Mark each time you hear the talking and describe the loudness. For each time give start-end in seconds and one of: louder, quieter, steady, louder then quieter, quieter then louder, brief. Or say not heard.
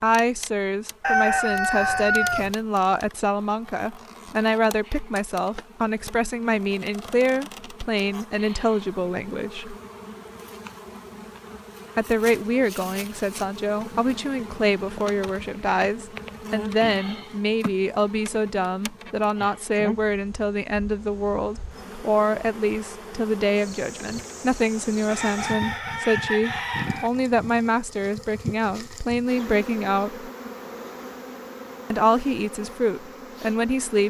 0.0-9.8 steady
11.9-30.3 steady
31.9-34.0 brief.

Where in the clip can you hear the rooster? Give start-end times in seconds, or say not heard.
1.0-2.5, 25.1-27.1.